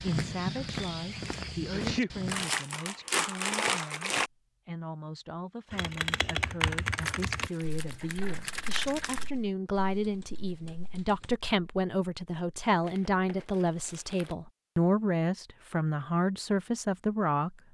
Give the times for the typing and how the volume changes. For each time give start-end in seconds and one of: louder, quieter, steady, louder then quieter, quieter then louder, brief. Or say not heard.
5.7-11.3 quieter.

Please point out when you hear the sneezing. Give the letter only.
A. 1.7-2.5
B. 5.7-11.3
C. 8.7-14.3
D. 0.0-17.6
A.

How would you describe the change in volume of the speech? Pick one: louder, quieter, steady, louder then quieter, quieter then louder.
louder.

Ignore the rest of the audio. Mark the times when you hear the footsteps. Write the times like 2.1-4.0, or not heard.
0.0-2.5.